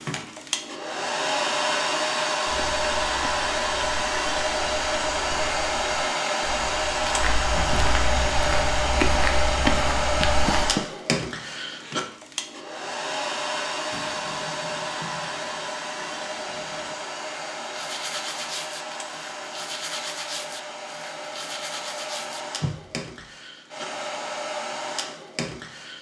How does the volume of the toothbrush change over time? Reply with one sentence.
The volume of the toothbrush goes down, then up.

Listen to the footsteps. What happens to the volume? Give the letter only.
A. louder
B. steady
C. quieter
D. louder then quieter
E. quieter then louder
A.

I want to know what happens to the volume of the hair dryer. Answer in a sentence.
The volume of the hair dryer goes down.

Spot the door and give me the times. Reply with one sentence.
You can hear the door from 10.2 to 10.8 s.